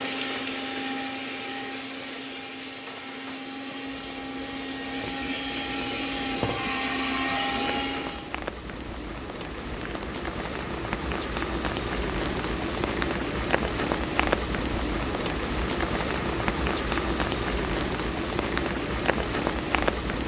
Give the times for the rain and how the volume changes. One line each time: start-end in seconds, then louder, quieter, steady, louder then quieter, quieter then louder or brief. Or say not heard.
0.0-20.2 louder.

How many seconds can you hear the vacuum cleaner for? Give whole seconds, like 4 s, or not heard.
8 s.